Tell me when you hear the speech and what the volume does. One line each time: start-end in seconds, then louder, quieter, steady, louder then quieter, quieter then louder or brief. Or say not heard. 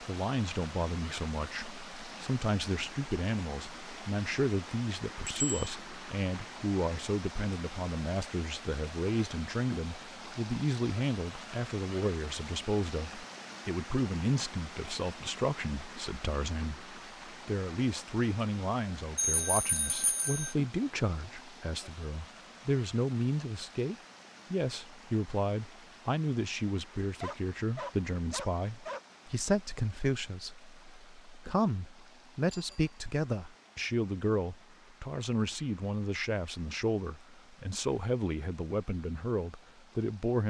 0.0-40.4 steady.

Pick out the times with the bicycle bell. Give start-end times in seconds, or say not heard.
5.2-5.7, 19.1-20.6, 32.5-33.0.